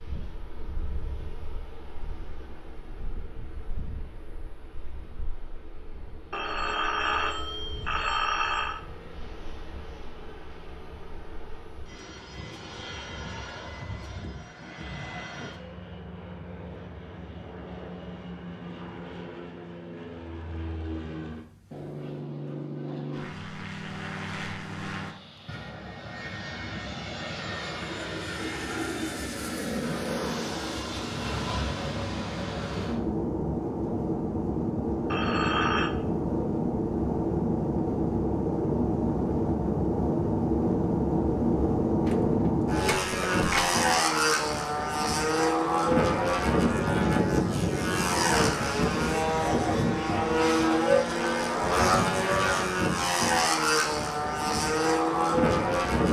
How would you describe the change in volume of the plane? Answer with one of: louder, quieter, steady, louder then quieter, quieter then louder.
louder.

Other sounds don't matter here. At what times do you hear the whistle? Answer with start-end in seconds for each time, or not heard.
not heard.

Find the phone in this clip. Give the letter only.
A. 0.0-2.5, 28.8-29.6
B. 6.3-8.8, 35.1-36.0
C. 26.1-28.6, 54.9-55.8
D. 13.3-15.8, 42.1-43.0
B.